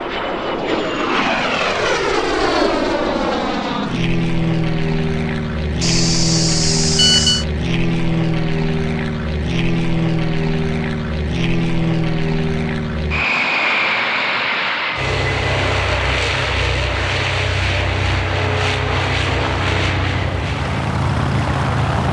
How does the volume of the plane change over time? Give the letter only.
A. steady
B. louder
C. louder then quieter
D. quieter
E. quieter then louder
A.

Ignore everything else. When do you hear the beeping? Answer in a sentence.
The beeping can be heard from 5.8 to 7.5 s.